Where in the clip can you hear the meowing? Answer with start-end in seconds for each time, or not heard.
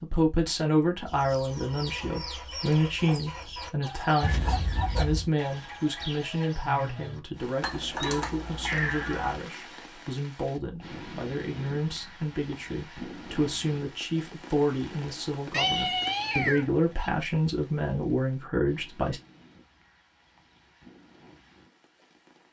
4.2-5.3, 7.6-9.4, 15.5-17.1.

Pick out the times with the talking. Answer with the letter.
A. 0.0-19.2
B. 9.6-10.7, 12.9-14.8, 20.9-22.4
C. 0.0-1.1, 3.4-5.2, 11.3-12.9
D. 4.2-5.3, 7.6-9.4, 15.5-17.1
A.